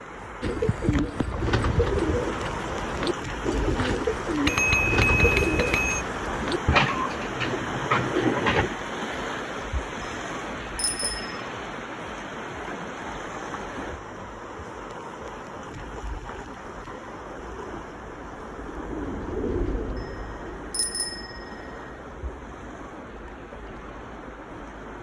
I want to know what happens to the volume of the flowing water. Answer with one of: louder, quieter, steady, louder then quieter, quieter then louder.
quieter.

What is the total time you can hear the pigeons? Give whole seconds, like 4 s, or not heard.
16 s.